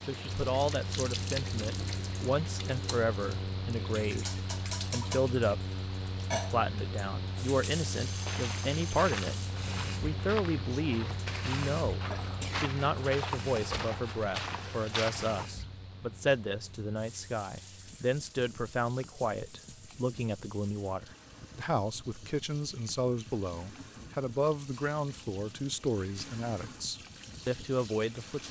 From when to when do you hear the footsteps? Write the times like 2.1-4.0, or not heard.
8.2-15.4.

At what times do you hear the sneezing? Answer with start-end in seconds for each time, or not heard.
12.1-12.8.